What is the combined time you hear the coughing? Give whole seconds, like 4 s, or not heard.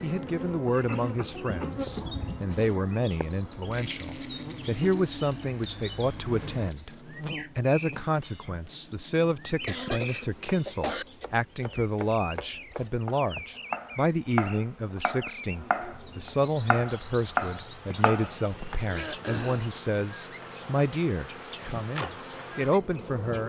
4 s.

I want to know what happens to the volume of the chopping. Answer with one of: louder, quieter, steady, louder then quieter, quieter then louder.
louder.